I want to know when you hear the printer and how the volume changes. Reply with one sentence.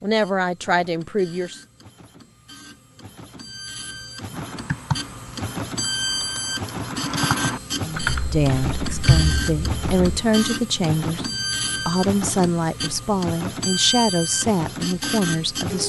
The printer can be heard from 0.0 to 15.8 s, getting louder.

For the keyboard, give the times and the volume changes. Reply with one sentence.
The keyboard can be heard from 4.3 to 10.0 s, getting quieter then louder.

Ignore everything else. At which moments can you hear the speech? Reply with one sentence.
You can hear the speech from 0.0 to 1.6 s, from 7.8 to 11.2 s and from 11.8 to 15.8 s.